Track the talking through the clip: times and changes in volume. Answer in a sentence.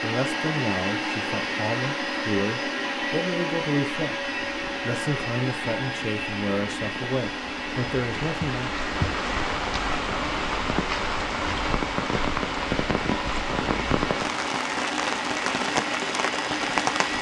The talking can be heard from 0.0 to 8.7 s, at a steady volume.